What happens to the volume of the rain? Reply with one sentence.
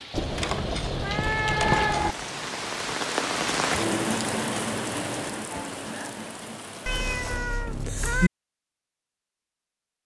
The loudness of the rain goes up, then down.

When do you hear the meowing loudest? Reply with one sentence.
The loudest moment of the meowing is at 2 seconds.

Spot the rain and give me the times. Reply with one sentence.
You can hear the rain from 0.0 to 7.4 s.